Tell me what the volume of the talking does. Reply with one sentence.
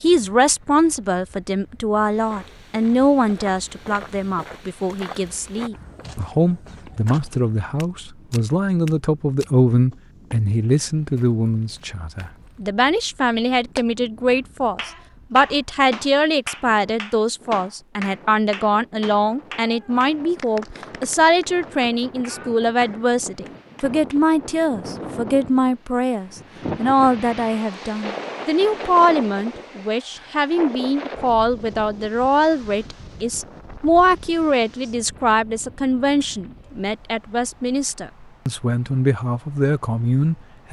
The loudness of the talking stays about the same.